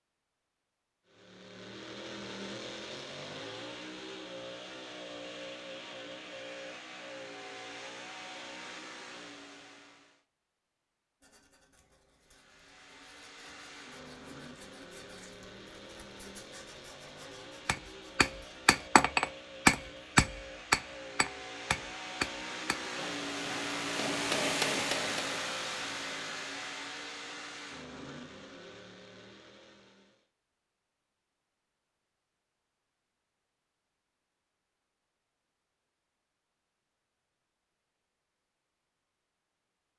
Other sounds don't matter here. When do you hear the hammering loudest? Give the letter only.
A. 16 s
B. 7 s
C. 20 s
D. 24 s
C.